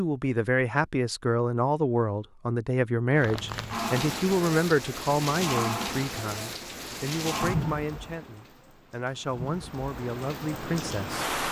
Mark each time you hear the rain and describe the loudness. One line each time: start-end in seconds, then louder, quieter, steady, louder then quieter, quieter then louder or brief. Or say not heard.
3.1-11.4 quieter then louder.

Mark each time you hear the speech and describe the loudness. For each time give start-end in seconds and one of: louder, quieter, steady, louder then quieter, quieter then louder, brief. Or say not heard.
0.0-11.2 quieter.